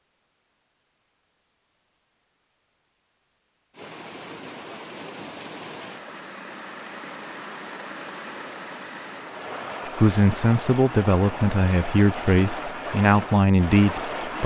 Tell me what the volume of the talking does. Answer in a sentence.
The loudness of the talking stays about the same.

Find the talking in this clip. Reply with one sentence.
You can hear the talking from 9.9 to 14.4 s.